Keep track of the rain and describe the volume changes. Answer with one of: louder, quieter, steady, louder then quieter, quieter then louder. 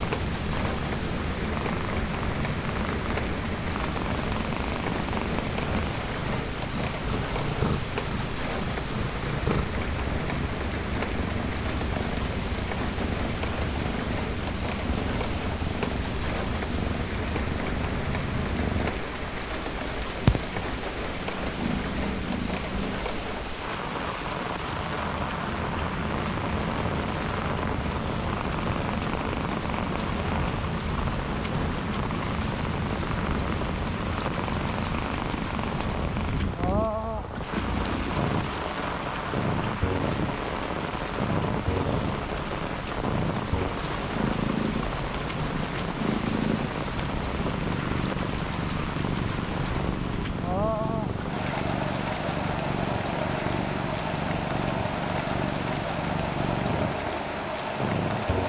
steady.